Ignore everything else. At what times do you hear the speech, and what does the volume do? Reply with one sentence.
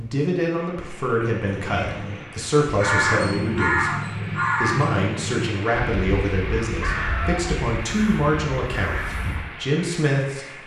The speech can be heard from 0.0 to 10.6 s, at a steady volume.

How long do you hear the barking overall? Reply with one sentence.
You can't hear the barking here.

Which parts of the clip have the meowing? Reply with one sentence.
The meowing can be heard from 1.4 to 2.4 s and from 6.8 to 7.4 s.